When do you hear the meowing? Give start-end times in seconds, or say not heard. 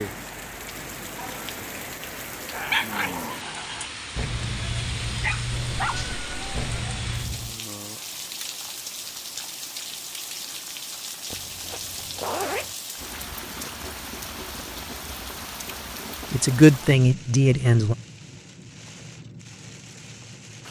5.5-6.8.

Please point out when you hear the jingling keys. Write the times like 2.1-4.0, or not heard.
not heard.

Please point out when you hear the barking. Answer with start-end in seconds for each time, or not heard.
2.3-7.6.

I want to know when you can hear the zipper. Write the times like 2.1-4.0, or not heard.
11.3-12.8.